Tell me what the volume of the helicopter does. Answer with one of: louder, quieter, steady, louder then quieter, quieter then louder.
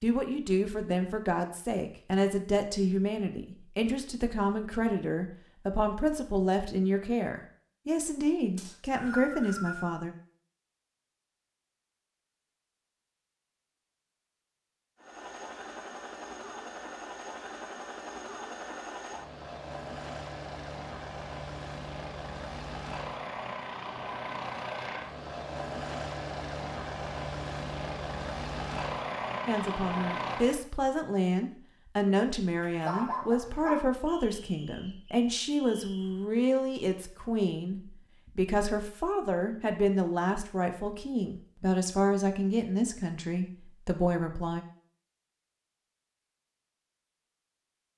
louder.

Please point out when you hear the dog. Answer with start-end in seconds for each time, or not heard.
32.5-33.8.